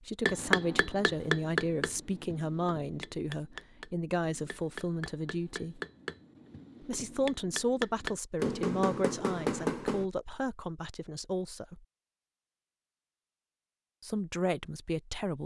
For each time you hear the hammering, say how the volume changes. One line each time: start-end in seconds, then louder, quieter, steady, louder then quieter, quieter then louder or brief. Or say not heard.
0.2-10.1 quieter then louder.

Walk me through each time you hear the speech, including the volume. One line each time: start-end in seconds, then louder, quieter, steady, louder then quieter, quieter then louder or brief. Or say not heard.
0.0-5.8 steady
6.8-11.8 quieter
14.0-15.4 brief.